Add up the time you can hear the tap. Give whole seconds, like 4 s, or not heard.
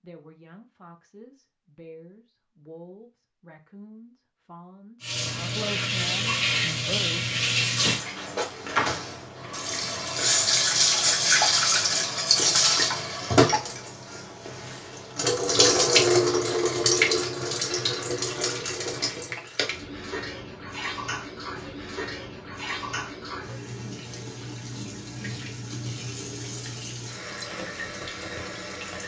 24 s.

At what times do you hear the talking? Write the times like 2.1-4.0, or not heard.
0.0-7.2.